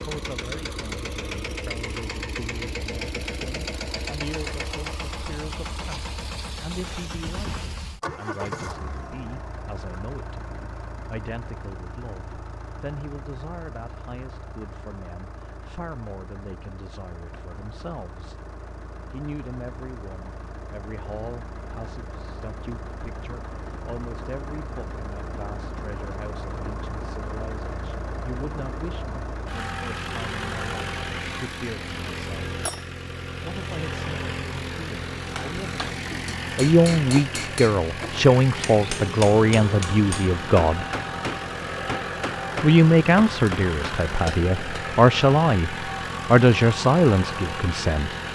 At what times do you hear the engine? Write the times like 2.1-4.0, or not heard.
0.0-48.3.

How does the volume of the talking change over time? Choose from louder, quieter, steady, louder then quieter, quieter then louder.
louder.